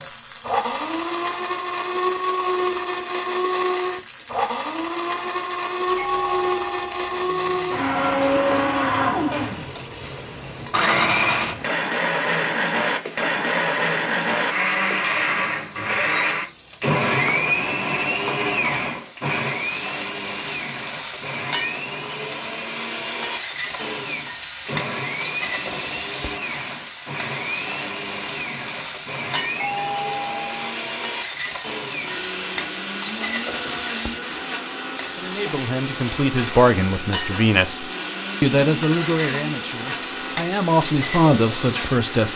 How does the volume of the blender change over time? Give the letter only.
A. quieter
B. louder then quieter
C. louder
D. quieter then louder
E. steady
A.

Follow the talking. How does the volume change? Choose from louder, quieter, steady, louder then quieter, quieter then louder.
quieter then louder.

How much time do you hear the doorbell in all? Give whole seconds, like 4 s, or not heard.
2 s.